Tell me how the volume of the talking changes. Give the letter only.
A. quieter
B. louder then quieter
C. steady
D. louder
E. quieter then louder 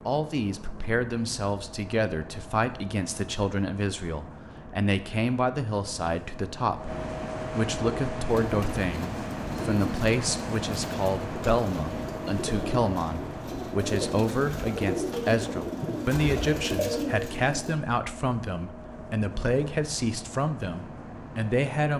C.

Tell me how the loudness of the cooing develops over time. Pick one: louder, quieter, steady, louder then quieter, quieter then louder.
louder.